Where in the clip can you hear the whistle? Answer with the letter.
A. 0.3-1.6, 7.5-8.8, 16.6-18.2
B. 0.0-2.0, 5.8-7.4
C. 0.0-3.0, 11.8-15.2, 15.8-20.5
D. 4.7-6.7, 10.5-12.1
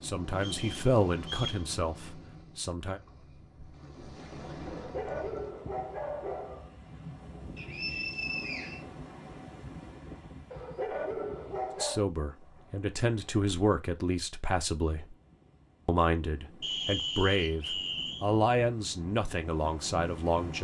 A.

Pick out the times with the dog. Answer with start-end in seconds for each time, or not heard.
4.7-6.7, 10.5-12.1.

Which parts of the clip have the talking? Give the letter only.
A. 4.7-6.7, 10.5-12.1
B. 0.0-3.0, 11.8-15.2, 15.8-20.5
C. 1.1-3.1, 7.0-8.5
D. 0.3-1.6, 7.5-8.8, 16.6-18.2
B.